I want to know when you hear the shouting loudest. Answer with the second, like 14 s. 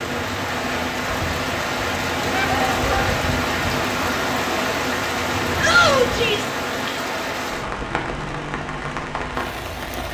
6 s.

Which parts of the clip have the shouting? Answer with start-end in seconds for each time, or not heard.
2.3-3.0, 5.6-6.5.